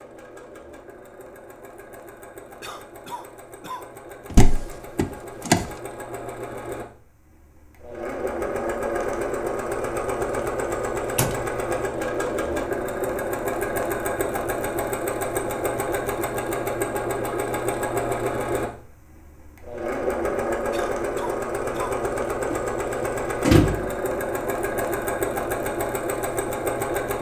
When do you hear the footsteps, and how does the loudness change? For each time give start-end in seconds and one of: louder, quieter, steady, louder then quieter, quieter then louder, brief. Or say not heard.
not heard.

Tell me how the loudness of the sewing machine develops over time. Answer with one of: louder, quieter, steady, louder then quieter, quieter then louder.
louder.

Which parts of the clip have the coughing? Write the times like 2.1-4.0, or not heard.
2.6-3.9, 20.7-21.9.